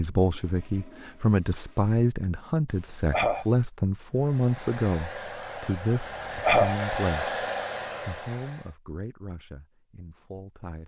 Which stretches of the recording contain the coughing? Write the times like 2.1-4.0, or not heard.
2.7-3.5, 6.0-6.8.